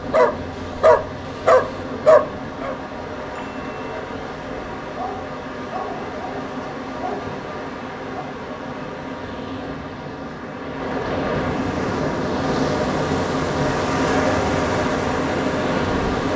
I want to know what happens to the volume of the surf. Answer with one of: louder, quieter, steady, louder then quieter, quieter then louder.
louder.